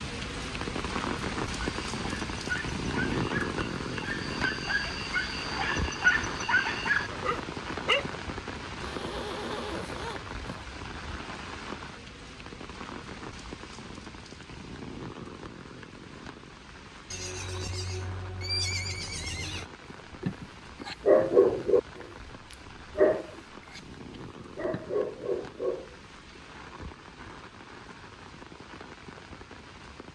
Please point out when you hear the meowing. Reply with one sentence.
You can't hear the meowing here.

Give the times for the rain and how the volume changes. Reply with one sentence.
You can hear the rain from 0.0 to 30.1 s, getting quieter.